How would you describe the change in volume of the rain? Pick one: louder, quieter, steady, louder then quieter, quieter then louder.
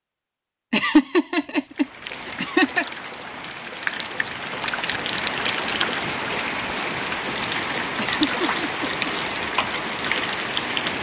louder.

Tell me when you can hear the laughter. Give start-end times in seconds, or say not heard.
0.7-2.9, 8.0-8.8.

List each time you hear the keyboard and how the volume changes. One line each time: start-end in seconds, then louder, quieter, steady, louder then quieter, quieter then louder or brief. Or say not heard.
not heard.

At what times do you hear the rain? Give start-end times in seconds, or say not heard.
1.7-10.9.